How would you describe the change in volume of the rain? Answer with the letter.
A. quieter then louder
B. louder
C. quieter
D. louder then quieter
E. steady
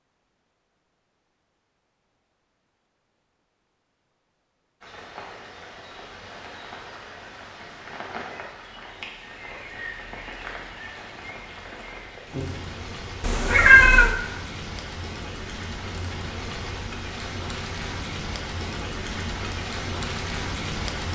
B.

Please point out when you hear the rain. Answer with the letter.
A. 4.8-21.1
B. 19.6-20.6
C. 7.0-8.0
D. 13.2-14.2
A.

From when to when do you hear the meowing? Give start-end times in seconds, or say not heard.
13.2-14.2.